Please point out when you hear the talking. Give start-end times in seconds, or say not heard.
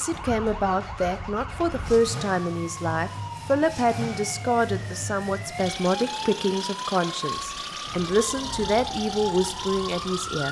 0.0-10.4.